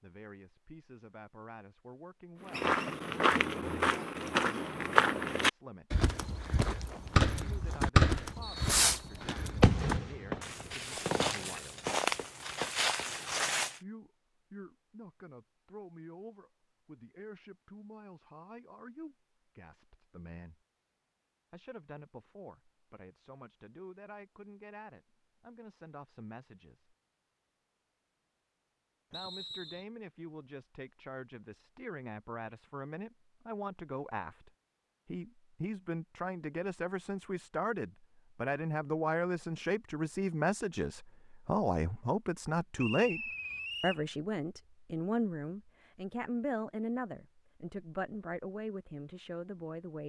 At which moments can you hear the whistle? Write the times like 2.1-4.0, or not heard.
8.4-9.5, 29.1-29.9, 42.8-44.0.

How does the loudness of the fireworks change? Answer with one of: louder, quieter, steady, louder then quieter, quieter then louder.
quieter.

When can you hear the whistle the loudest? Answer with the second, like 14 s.
43 s.